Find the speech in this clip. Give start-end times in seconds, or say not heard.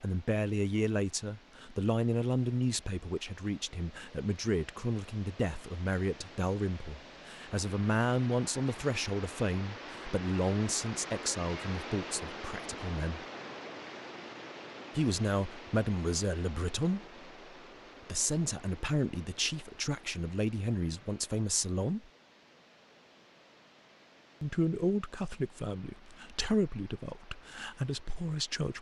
0.0-13.2, 14.9-17.1, 18.1-22.1, 24.4-28.7.